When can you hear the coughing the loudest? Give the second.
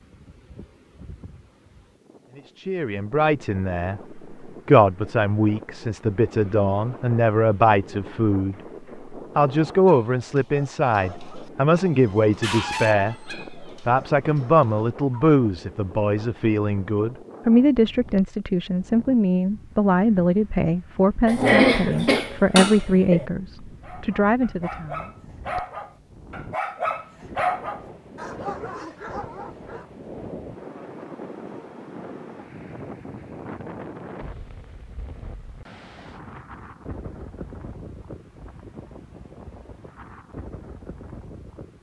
22 s.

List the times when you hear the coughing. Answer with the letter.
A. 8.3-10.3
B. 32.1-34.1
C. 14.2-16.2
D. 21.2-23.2
D.